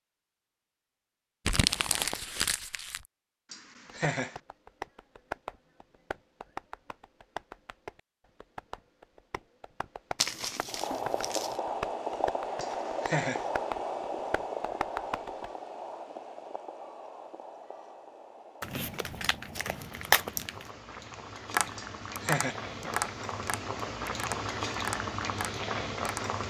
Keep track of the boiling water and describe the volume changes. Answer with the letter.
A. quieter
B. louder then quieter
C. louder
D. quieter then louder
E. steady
D.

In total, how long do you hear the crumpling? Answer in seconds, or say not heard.
5 s.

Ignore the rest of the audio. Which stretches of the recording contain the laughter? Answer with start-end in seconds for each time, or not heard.
3.5-4.4, 12.6-13.5, 21.8-22.6.